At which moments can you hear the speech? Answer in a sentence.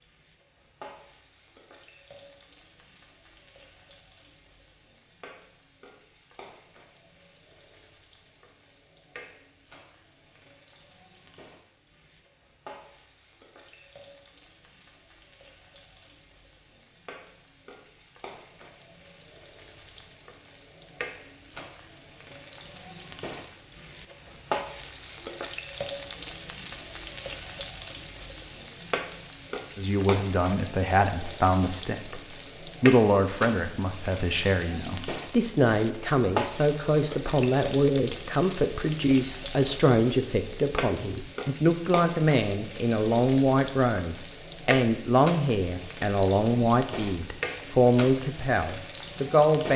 You can hear the speech from 29.8 to 32.2 s and from 32.8 to 49.7 s.